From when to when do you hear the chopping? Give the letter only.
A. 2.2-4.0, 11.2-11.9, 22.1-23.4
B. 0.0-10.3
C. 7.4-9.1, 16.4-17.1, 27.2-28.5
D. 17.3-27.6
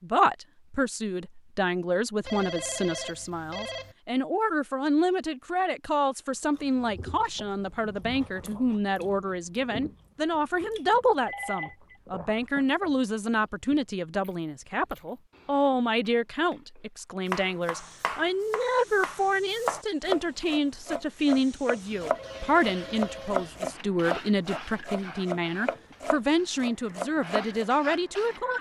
D.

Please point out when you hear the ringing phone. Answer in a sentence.
You can hear the ringing phone from 2.2 to 4.0 s, from 11.2 to 11.9 s and from 22.1 to 23.4 s.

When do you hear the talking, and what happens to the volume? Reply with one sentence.
The talking can be heard from 0.0 to 28.5 s, at a steady volume.